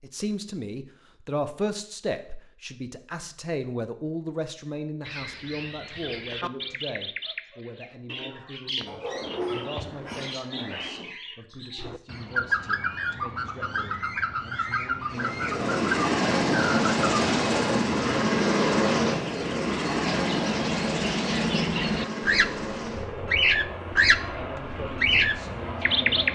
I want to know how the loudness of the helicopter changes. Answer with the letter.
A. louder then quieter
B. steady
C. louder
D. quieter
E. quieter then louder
D.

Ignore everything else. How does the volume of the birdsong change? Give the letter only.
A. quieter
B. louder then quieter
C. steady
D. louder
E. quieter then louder
D.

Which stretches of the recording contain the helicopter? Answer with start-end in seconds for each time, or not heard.
15.1-26.2.